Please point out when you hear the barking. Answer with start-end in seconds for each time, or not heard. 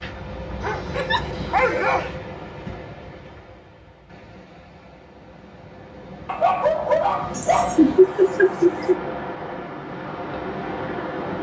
0.6-2.1, 6.2-7.8.